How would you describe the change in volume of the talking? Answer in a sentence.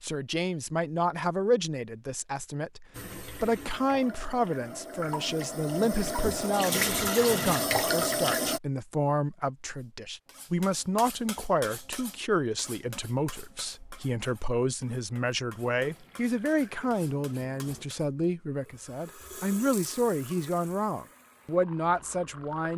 The loudness of the talking stays about the same.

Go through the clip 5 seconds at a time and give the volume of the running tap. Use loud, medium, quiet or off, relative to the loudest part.
quiet, loud, off, quiet, quiet.